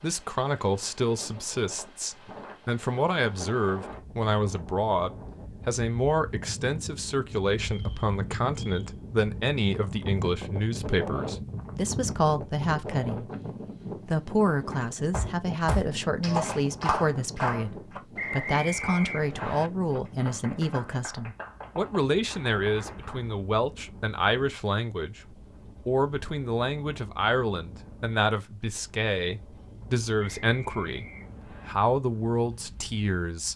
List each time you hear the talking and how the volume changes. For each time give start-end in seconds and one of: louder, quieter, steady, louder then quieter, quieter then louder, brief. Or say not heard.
0.0-13.3 steady
14.1-33.5 steady.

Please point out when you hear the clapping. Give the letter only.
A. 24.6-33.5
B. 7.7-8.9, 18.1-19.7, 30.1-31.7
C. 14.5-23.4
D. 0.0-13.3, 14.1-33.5
C.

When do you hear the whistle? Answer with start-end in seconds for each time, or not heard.
7.7-8.9, 18.1-19.7, 30.1-31.7.